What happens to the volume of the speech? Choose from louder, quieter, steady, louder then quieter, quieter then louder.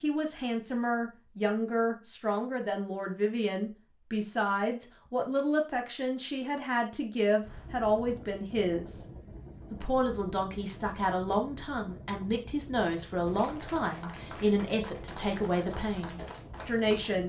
steady.